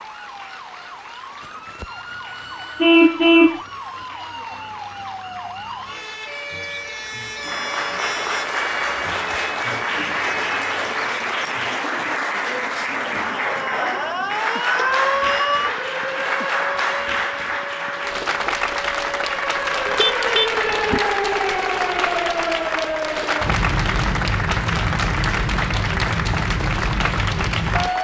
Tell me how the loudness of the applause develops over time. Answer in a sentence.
The loudness of the applause goes up.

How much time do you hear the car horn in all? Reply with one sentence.
You can hear the car horn for 2 seconds altogether.